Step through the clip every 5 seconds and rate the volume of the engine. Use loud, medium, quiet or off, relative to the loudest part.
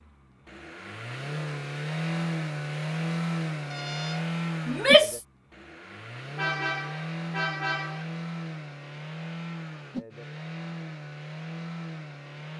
loud, medium, medium.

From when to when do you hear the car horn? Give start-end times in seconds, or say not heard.
3.6-4.3, 6.3-8.1.